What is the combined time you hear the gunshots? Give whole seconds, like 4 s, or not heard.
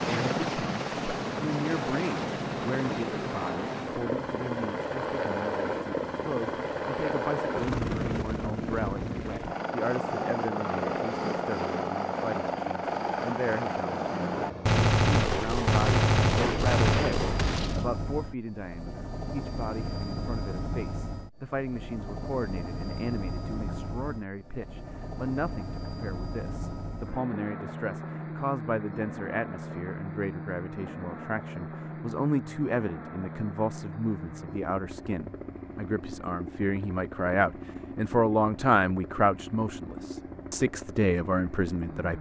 3 s.